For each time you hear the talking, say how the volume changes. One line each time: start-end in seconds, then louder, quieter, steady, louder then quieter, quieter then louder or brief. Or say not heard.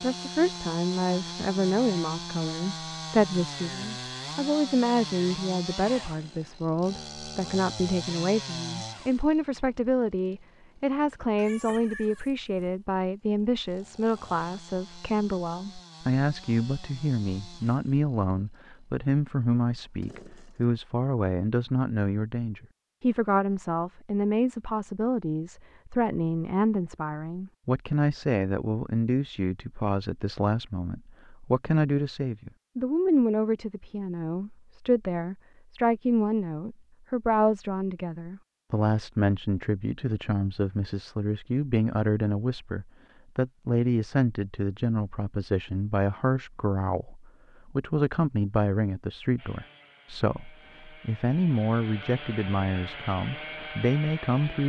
0.0-54.6 steady.